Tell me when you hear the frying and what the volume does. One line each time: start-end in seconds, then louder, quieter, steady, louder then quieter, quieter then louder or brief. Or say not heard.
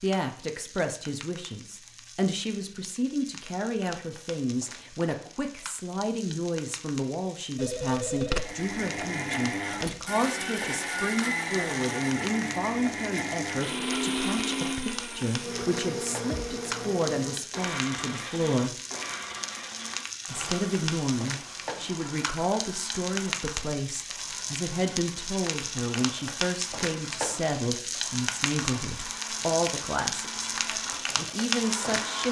0.0-32.2 louder.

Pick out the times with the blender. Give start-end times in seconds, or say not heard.
8.3-32.2.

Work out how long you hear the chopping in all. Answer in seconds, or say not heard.
not heard.